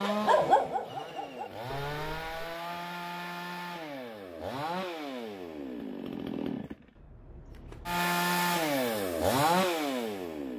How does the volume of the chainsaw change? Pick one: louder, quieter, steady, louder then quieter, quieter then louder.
louder.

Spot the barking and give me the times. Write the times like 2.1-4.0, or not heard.
0.0-2.5.